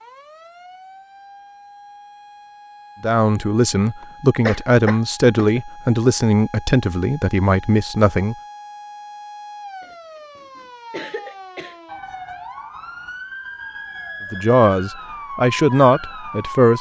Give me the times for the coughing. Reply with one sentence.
The coughing can be heard from 4.0 to 5.6 s and from 9.8 to 11.8 s.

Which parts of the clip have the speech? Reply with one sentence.
You can hear the speech from 3.0 to 8.3 s and from 14.3 to 16.7 s.